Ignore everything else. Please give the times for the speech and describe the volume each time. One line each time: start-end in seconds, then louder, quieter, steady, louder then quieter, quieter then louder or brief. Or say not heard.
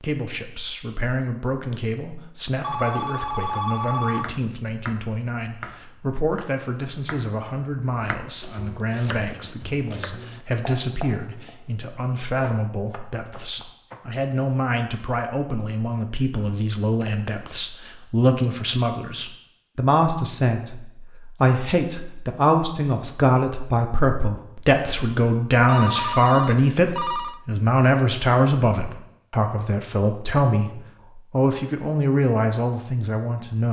0.0-33.6 louder.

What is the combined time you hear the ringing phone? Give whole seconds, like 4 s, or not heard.
4 s.